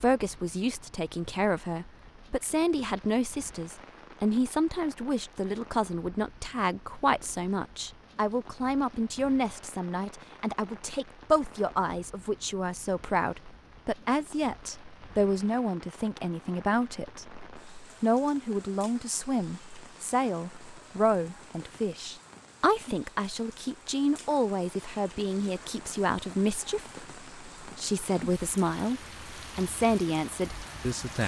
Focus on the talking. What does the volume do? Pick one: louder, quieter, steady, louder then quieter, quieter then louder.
steady.